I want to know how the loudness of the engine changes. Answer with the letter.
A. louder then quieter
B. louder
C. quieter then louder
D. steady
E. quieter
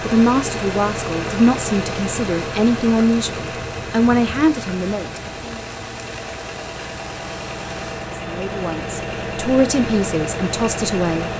C.